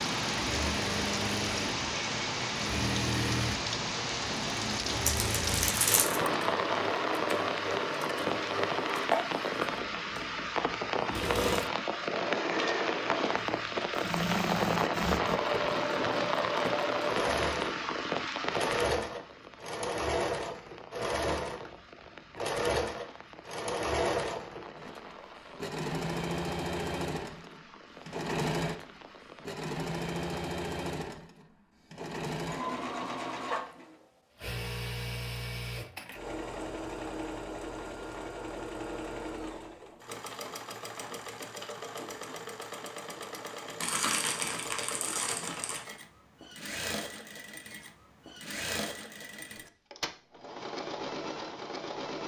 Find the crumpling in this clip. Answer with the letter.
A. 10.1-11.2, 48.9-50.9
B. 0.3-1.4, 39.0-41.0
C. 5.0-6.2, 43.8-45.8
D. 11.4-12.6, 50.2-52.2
C.